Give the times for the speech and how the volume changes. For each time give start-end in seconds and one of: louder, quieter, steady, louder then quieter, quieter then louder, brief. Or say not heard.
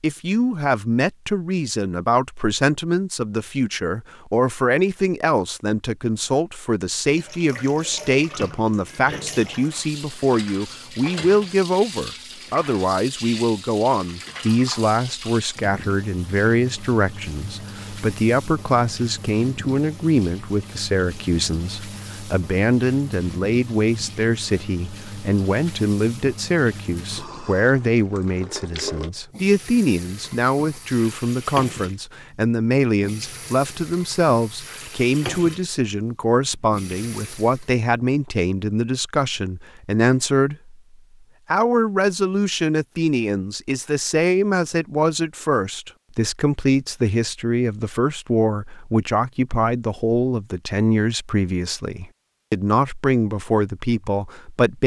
0.0-40.8 steady
41.5-54.8 steady.